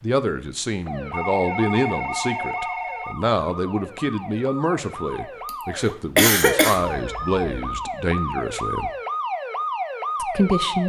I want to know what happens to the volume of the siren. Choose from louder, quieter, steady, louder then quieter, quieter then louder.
louder.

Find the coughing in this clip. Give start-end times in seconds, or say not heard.
5.5-6.8.